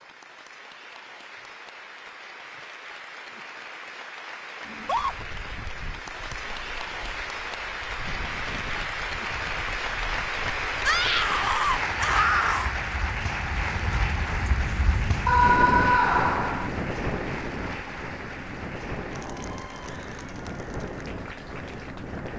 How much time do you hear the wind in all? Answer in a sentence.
You can hear the wind for 17 seconds altogether.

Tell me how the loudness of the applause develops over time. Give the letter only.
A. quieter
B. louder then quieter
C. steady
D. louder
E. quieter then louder
B.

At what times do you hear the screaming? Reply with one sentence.
You can hear the screaming from 4.7 to 5.2 s, from 10.8 to 12.8 s and from 15.2 to 16.7 s.